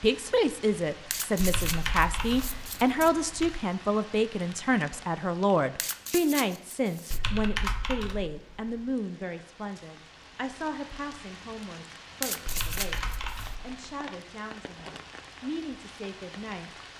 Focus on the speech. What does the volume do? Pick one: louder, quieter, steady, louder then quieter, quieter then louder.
quieter.